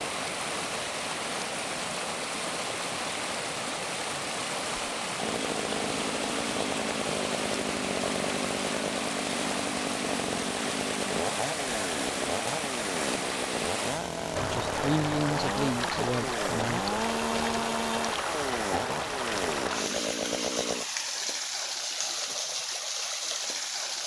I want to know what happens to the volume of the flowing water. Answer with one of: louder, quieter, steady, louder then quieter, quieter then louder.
steady.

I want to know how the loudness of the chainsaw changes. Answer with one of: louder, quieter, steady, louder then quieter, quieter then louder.
steady.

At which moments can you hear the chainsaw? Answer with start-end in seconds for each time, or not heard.
5.2-20.9.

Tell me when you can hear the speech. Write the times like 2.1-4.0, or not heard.
14.4-16.8.